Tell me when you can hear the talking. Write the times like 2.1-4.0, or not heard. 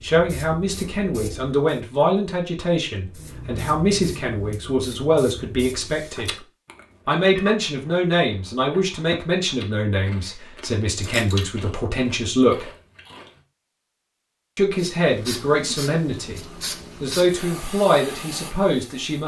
0.0-6.3, 7.0-12.7, 14.6-16.4, 17.0-19.2.